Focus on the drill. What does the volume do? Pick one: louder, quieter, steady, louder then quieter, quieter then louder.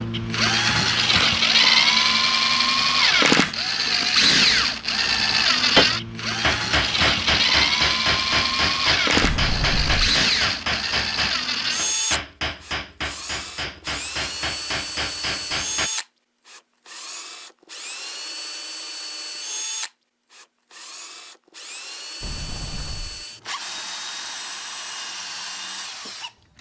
quieter.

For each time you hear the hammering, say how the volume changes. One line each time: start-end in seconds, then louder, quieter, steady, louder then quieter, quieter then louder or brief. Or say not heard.
5.8-15.9 quieter.